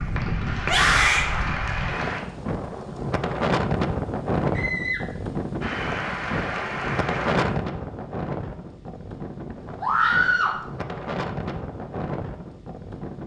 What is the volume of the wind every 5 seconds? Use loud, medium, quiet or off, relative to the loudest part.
loud, loud, medium.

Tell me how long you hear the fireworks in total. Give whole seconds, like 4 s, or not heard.
not heard.